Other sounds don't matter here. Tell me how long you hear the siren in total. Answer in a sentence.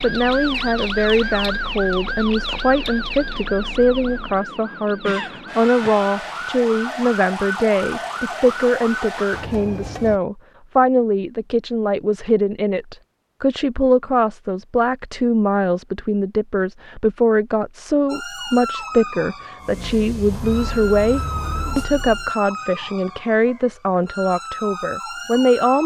You can hear the siren for 18 seconds altogether.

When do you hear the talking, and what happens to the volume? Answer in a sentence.
The talking can be heard from 0.0 to 25.8 s, at a steady volume.